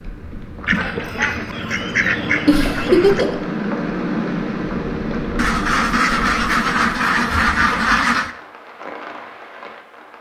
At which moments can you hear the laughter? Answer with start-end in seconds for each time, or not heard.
2.5-3.4.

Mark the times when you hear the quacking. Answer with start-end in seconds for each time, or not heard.
0.7-3.2, 5.3-8.3.